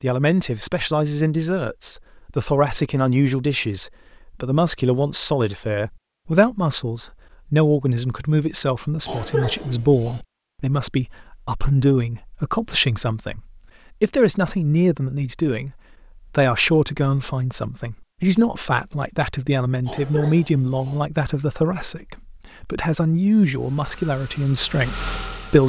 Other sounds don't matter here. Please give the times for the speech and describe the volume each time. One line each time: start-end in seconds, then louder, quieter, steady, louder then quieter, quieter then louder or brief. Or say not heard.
0.0-15.7 steady
16.3-25.6 steady.